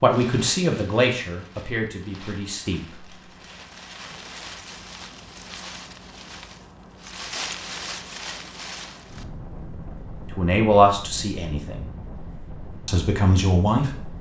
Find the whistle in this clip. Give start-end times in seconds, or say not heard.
not heard.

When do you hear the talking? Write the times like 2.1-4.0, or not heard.
0.0-3.0, 10.3-11.8, 12.8-14.1.